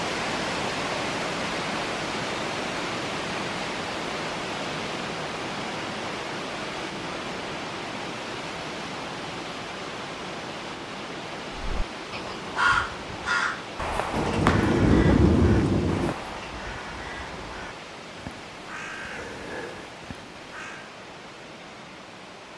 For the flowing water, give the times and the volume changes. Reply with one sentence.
You can hear the flowing water from 0.0 to 22.5 s, getting quieter.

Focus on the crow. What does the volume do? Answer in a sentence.
The volume of the crow goes down.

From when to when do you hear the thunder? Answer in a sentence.
You can hear the thunder from 14.1 to 16.1 s.